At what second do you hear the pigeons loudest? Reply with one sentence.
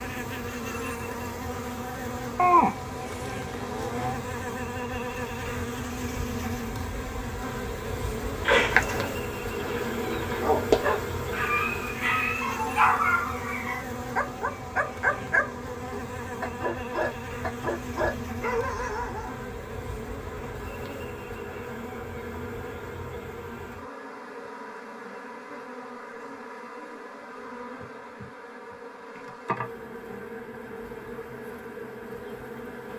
The loudest moment of the pigeons is at 9 seconds.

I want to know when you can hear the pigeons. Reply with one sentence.
The pigeons can be heard from 8.3 to 10.4 s.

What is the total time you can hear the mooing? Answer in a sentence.
The mooing can be heard for 2 seconds in total.